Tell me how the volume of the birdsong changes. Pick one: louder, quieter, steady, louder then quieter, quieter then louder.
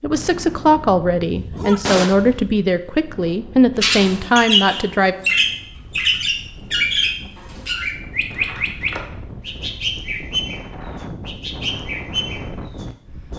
quieter.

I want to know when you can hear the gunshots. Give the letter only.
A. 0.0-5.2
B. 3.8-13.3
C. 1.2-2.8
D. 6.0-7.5
C.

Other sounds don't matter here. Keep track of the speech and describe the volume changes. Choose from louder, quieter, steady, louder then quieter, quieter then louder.
steady.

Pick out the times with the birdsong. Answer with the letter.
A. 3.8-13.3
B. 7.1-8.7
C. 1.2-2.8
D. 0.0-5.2
A.